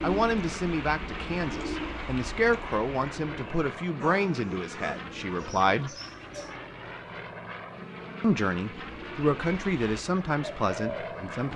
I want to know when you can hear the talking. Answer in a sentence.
You can hear the talking from 0.0 to 5.9 s and from 8.2 to 11.5 s.